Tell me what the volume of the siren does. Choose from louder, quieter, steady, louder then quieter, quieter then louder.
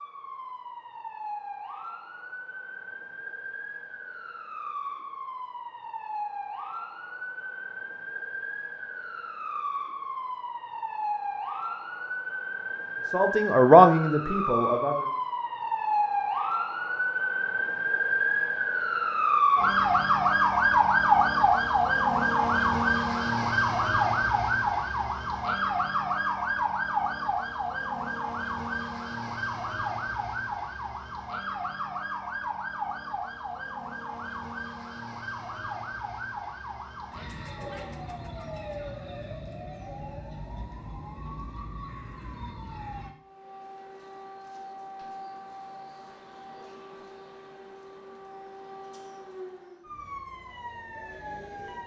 louder then quieter.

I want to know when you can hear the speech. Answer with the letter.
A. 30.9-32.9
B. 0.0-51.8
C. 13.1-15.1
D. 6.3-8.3
C.